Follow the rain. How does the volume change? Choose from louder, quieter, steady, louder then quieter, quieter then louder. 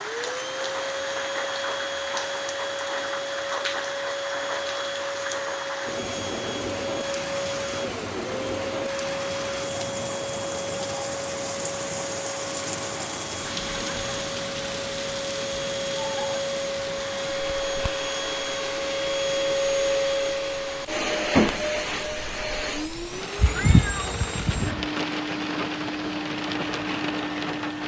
quieter then louder.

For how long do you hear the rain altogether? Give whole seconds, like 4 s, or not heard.
28 s.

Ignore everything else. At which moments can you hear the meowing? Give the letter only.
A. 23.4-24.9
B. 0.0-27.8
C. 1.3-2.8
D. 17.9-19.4
A.